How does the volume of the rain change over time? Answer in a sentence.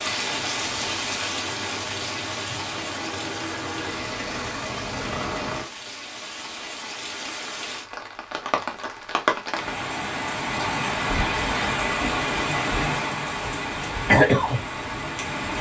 The loudness of the rain goes down, then up.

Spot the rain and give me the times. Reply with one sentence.
You can hear the rain from 0.0 to 15.5 s.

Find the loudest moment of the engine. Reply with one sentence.
The volume of the engine peaks at 5 seconds.